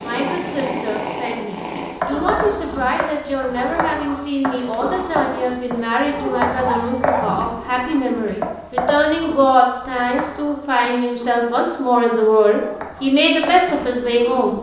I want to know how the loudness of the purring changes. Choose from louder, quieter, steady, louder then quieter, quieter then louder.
quieter.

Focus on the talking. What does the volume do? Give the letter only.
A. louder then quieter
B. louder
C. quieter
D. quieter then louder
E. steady
B.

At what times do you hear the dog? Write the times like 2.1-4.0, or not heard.
6.5-7.8.